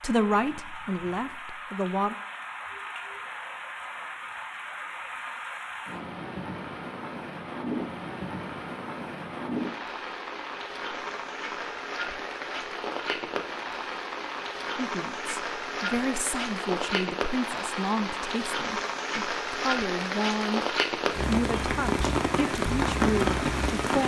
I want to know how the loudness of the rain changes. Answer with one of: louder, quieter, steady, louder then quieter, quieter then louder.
louder.